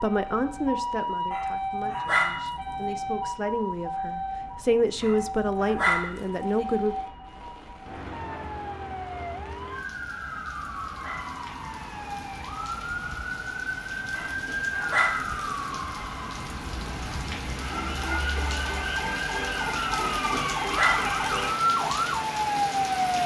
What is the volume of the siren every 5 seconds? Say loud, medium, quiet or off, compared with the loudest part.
medium, medium, medium, medium, loud.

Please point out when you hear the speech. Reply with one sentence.
The speech can be heard from 0.0 to 7.0 s.